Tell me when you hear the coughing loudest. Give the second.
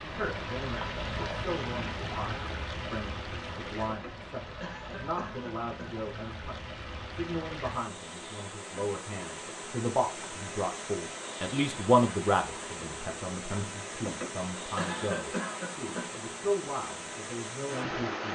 15 s.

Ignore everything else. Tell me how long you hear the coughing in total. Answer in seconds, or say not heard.
4 s.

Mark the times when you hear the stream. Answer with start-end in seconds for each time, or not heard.
0.0-18.3.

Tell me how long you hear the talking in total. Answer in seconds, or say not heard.
18 s.